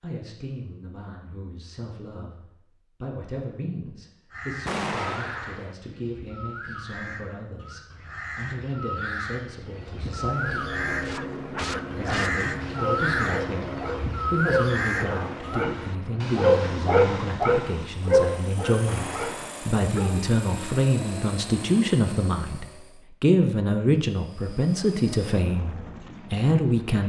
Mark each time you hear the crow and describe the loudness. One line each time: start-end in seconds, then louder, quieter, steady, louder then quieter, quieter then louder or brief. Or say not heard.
4.3-15.7 louder.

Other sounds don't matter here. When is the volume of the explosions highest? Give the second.
5 s.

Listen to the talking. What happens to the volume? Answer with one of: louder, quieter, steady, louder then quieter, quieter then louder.
louder.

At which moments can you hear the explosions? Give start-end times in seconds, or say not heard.
4.7-5.8, 18.9-19.8.